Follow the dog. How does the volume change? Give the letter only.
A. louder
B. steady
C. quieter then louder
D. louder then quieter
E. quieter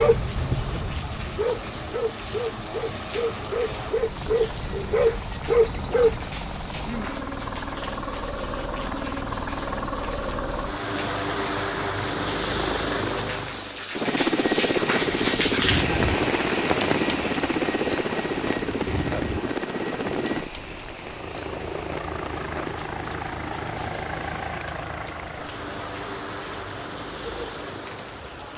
A.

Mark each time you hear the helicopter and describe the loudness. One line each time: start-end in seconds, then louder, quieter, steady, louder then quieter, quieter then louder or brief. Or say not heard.
0.0-28.4 louder then quieter.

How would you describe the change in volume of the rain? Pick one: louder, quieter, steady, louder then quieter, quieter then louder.
louder then quieter.